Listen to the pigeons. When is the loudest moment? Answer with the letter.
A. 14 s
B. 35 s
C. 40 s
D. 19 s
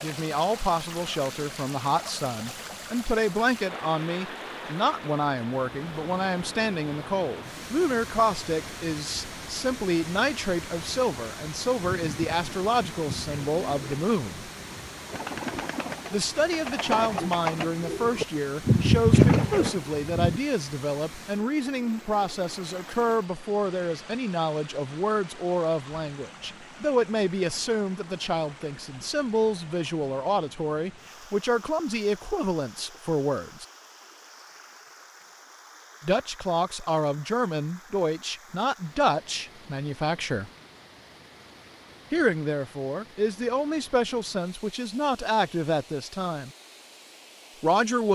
D.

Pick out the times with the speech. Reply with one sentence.
The speech can be heard from 0.0 to 14.5 s, from 16.1 to 33.6 s, from 36.0 to 40.5 s, from 42.1 to 46.5 s and from 47.6 to 48.1 s.